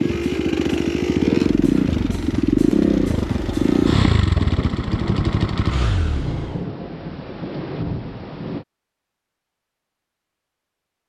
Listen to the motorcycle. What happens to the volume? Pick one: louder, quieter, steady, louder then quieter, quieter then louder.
quieter.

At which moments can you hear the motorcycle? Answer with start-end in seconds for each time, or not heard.
0.0-6.7.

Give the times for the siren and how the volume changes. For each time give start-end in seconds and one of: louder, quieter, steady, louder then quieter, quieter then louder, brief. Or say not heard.
not heard.